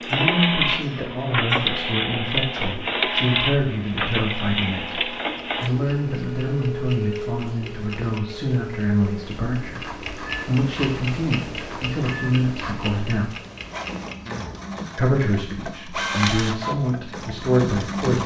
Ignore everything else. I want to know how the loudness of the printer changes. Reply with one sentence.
The loudness of the printer goes down, then up.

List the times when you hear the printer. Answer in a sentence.
You can hear the printer from 0.0 to 18.2 s.